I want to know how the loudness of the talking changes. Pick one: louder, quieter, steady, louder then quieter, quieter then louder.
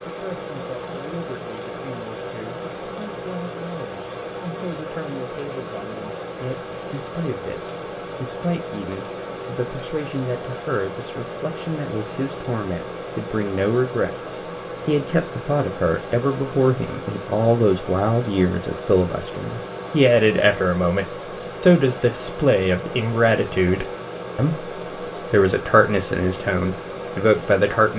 louder.